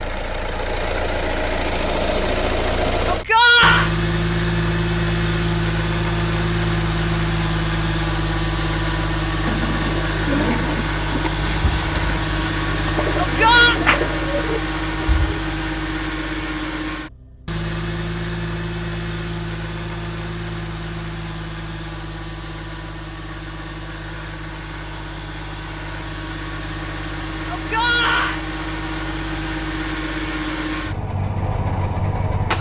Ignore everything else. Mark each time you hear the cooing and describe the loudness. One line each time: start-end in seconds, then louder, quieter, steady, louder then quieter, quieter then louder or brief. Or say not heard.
9.4-15.2 quieter then louder.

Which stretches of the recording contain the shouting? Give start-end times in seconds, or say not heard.
3.0-3.9, 13.2-13.8, 27.5-28.4.